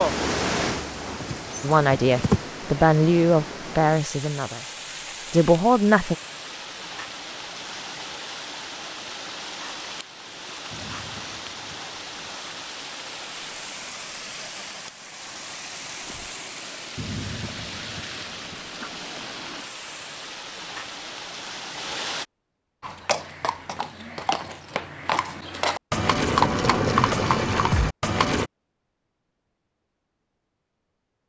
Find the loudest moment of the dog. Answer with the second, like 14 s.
17 s.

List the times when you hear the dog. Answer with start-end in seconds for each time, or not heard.
10.7-12.4, 16.9-18.9.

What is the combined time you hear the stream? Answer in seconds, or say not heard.
22 s.